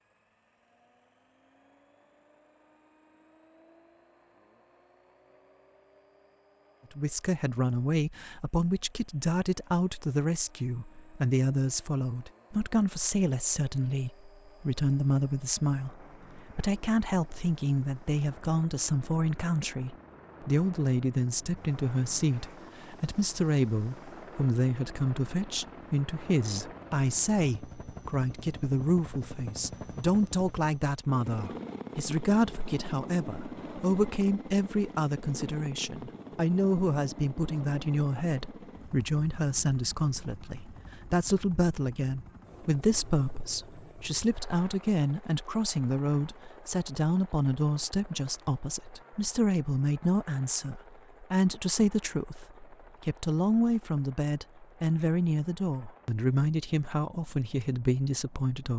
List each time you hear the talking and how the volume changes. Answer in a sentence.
You can hear the talking from 7.0 to 58.7 s, at a steady volume.